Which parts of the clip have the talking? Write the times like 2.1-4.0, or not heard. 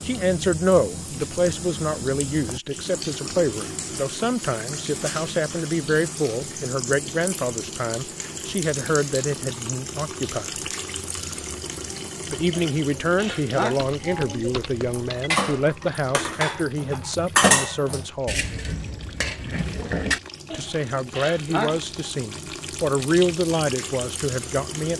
0.0-10.7, 12.3-18.4, 20.5-24.9.